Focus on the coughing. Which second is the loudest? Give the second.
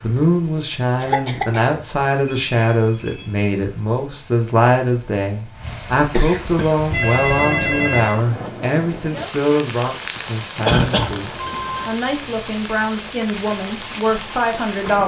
11 s.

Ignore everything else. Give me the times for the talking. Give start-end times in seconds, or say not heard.
0.0-15.0.